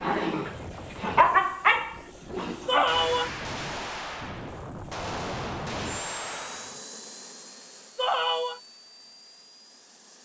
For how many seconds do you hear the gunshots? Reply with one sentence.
You can hear the gunshots for 4 seconds altogether.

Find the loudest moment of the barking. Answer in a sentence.
The loudest moment of the barking is at 1 second.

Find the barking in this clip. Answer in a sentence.
The barking can be heard from 0.0 to 3.0 s.